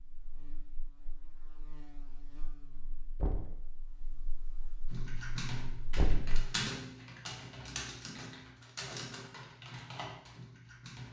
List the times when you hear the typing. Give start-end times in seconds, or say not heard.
4.9-11.0.